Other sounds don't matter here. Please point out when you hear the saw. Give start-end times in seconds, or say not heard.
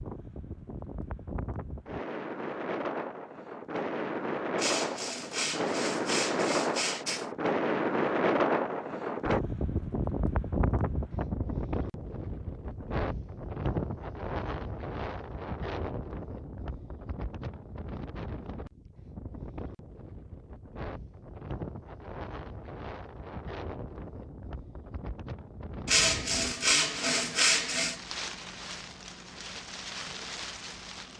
4.5-7.3, 25.9-28.0.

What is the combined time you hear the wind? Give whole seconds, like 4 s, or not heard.
31 s.